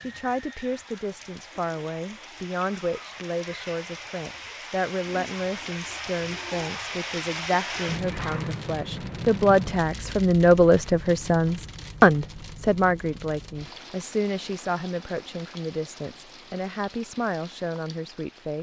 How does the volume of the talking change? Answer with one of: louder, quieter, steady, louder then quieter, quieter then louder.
louder then quieter.